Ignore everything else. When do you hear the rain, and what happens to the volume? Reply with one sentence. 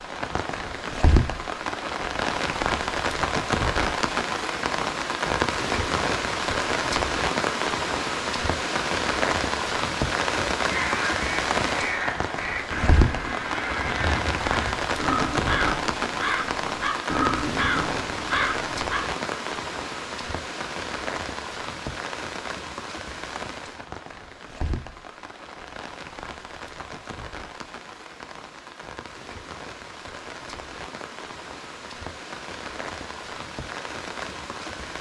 You can hear the rain from 0.0 to 34.9 s, getting quieter.